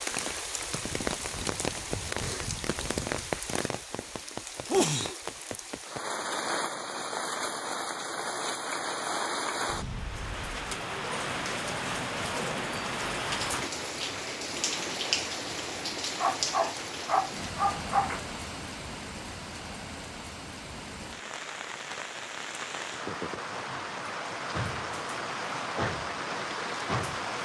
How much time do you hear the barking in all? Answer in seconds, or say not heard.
2 s.